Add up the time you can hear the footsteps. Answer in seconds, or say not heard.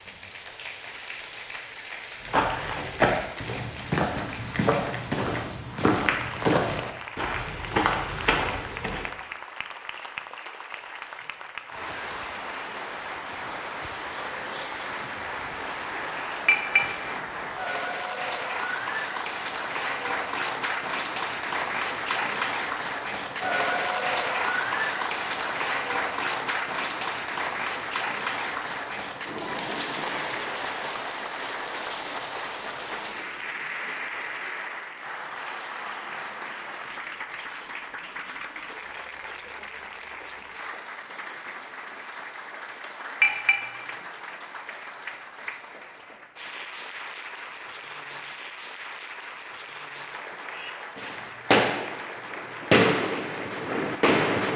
7 s.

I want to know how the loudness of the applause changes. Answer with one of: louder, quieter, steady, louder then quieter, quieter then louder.
louder then quieter.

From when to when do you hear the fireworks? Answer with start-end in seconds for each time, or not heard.
50.5-54.5.